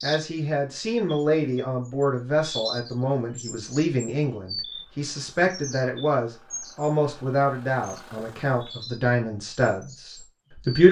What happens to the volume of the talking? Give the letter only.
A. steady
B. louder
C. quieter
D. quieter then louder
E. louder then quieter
A.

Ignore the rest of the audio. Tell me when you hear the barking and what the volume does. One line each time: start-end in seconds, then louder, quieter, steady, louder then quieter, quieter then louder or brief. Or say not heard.
not heard.